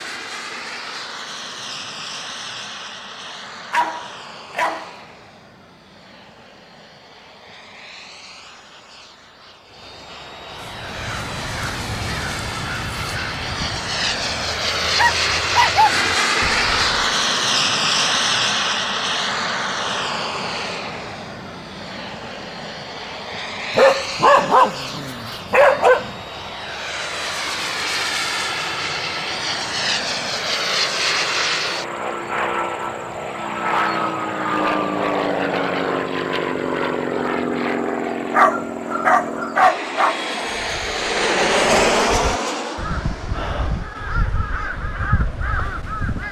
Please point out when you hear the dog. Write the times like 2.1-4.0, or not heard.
3.7-4.9, 14.9-15.9, 23.8-26.1, 38.3-40.1.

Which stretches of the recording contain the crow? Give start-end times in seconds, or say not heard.
10.5-17.0, 40.4-46.2.